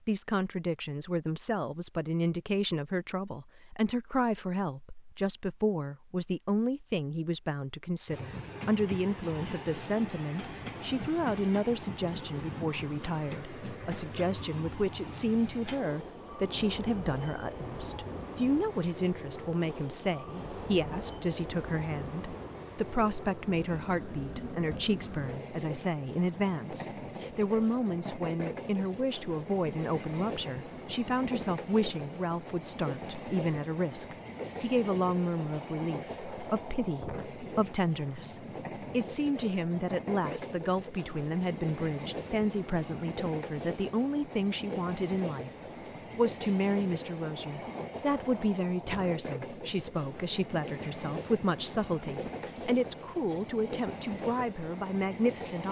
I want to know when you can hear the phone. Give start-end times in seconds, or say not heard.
not heard.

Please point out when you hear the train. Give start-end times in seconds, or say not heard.
8.1-55.6.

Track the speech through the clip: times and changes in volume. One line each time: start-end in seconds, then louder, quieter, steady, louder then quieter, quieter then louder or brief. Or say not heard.
0.1-45.5 steady
46.1-55.6 steady.